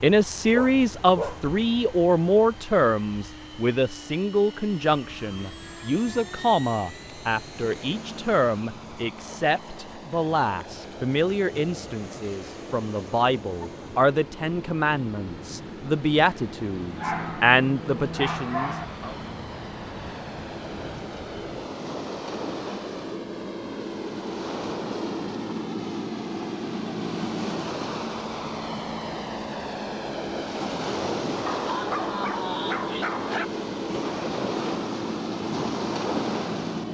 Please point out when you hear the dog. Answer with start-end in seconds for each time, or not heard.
0.5-1.4, 16.9-18.9, 31.4-33.5.